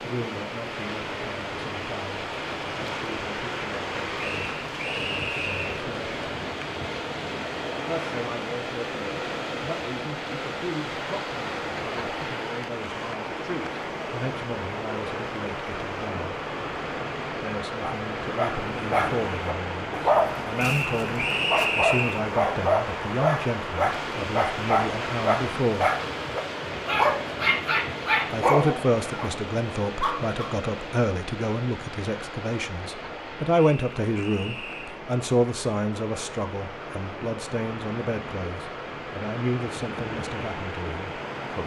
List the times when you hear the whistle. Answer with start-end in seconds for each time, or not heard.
4.2-5.8, 20.6-22.2, 33.5-35.0.